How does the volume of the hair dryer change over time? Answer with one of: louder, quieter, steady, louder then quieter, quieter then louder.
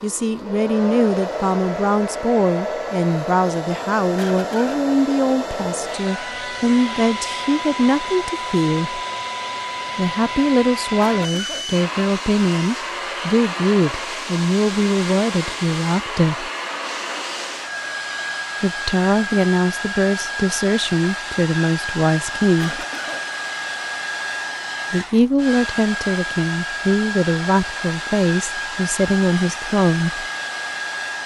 steady.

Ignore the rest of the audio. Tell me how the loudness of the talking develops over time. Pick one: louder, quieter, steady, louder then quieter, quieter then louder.
steady.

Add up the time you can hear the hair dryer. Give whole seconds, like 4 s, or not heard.
31 s.